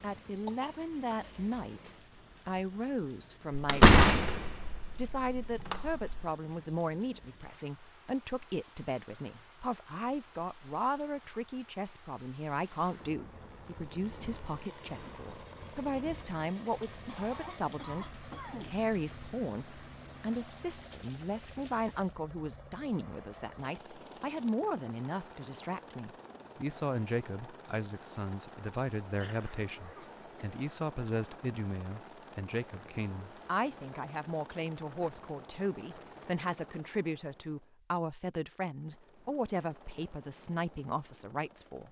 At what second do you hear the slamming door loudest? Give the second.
4 s.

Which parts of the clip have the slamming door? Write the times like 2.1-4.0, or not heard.
3.5-6.2.